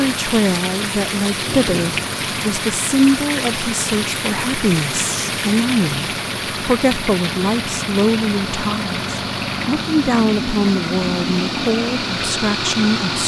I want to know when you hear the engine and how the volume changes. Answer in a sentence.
The engine can be heard from 0.0 to 13.2 s, getting louder.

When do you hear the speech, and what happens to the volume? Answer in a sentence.
You can hear the speech from 0.0 to 13.2 s, at a steady volume.